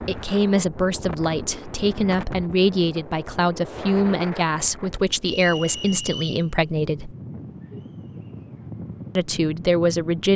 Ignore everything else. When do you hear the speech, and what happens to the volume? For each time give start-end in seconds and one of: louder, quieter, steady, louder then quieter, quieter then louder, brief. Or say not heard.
0.0-7.2 steady
9.2-10.3 brief.